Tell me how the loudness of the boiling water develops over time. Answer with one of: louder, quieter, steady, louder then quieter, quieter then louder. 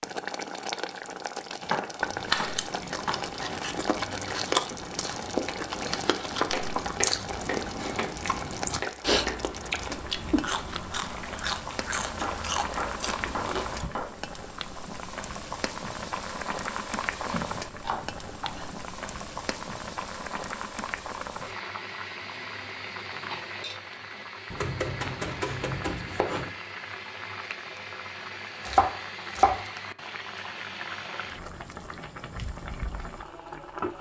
steady.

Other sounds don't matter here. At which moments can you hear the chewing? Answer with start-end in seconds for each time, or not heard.
2.0-13.9.